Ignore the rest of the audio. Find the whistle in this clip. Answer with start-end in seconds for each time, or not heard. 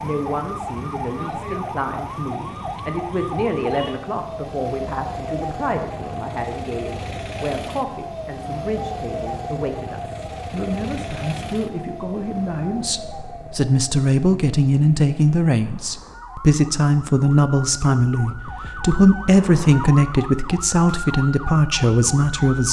not heard.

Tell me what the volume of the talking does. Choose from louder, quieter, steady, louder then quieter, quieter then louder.
louder.